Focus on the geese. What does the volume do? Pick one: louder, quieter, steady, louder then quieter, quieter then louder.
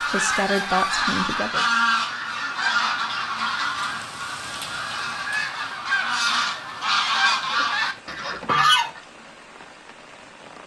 quieter then louder.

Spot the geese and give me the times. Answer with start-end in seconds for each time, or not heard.
0.0-9.0.